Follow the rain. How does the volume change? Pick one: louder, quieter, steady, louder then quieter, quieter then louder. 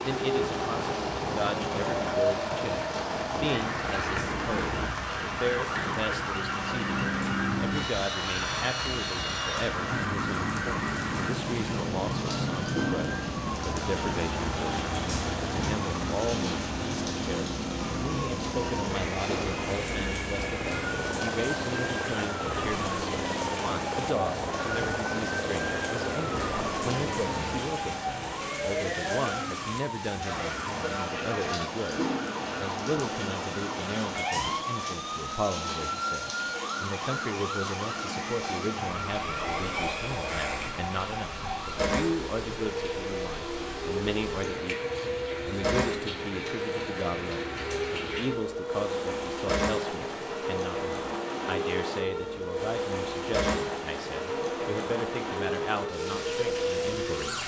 steady.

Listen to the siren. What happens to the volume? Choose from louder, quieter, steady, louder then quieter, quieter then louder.
steady.